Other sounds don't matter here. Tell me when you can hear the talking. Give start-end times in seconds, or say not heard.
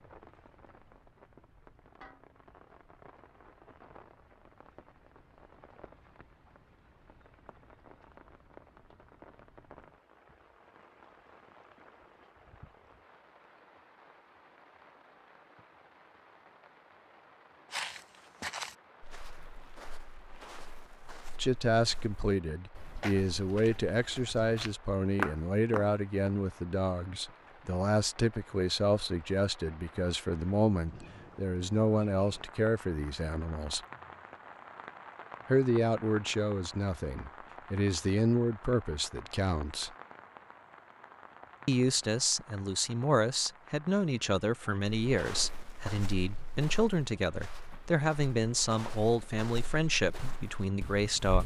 21.4-33.8, 35.5-39.9, 41.6-51.4.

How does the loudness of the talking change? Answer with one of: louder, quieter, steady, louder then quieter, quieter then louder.
steady.